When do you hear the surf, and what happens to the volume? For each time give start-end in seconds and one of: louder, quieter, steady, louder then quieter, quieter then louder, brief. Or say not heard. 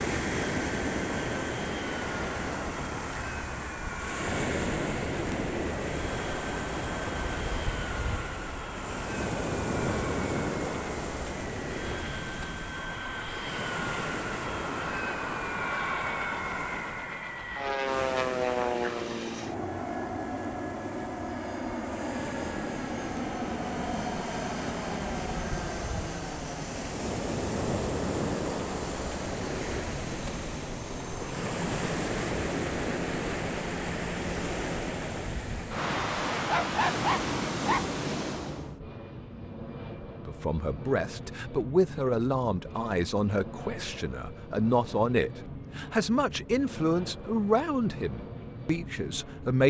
0.0-38.8 quieter then louder.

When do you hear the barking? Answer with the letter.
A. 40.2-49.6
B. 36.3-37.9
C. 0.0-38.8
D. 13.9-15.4
B.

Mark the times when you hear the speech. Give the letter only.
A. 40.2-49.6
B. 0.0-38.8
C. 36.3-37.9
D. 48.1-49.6
A.